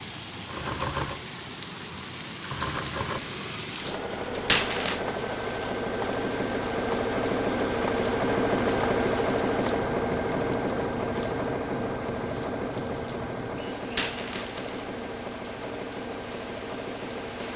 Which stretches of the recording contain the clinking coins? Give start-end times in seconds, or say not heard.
4.3-5.0, 13.8-14.8.